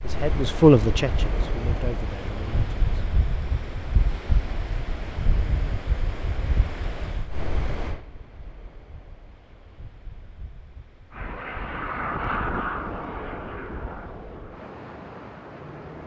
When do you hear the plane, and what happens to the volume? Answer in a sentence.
The plane can be heard from 11.1 to 16.0 s, getting quieter.